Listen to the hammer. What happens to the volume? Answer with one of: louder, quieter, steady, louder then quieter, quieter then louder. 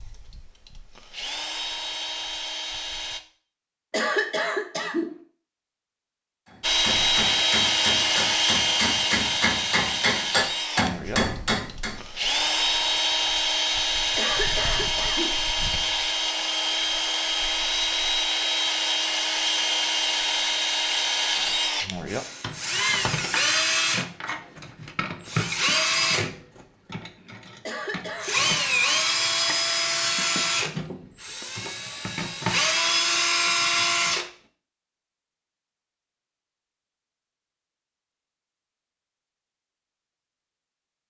louder.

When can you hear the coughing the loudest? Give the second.
4 s.